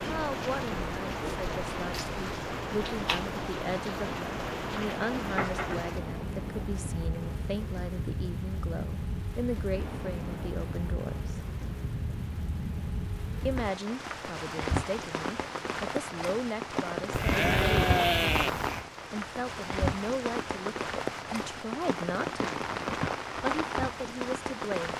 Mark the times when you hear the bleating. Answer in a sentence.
The bleating can be heard from 17.1 to 18.9 s.